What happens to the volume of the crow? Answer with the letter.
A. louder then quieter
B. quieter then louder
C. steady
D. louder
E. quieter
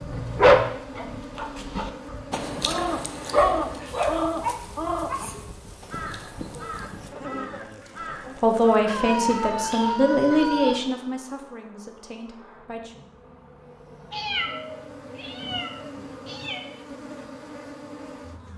E.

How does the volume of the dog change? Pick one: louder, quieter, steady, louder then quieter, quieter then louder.
louder then quieter.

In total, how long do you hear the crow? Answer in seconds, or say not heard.
8 s.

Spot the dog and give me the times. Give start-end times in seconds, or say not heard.
0.3-6.9.